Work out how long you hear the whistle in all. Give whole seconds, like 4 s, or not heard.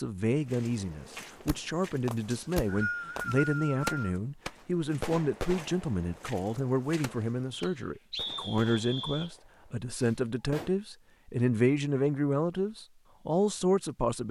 4 s.